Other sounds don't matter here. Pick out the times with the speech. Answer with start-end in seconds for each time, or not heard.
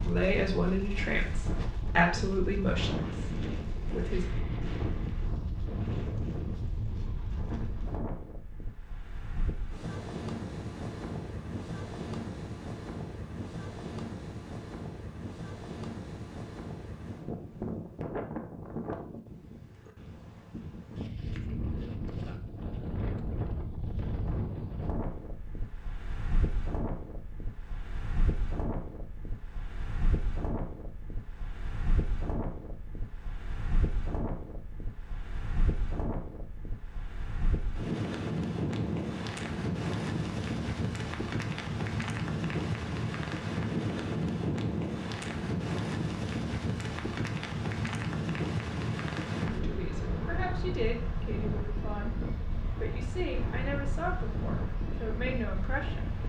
0.0-4.2, 49.5-56.0.